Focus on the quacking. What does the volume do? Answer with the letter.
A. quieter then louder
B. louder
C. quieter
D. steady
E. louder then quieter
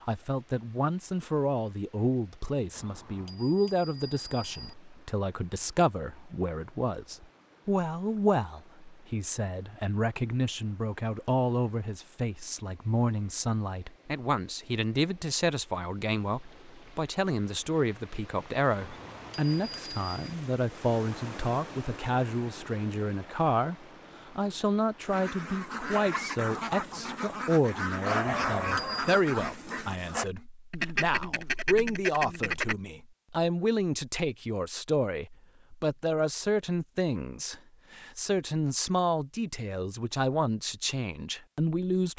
D.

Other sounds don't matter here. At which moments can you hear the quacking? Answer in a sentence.
The quacking can be heard from 25.1 to 32.8 s.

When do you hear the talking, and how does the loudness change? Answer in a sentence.
The talking can be heard from 0.0 to 42.1 s, at a steady volume.